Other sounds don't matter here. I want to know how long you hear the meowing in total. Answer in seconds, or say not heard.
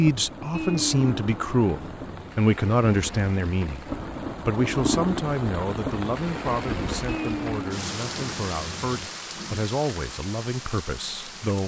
4 s.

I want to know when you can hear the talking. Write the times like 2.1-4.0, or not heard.
0.0-11.6.